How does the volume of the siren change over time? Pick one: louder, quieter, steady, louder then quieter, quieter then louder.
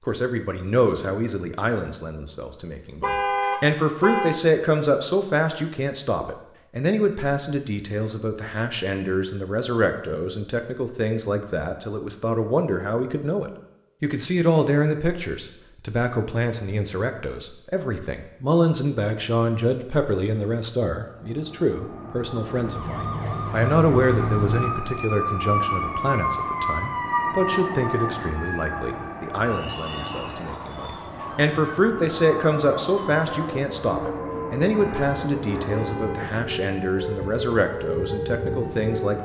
quieter then louder.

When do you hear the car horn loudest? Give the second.
3 s.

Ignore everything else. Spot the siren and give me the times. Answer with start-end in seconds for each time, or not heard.
22.6-39.2.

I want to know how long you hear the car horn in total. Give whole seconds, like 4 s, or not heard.
3 s.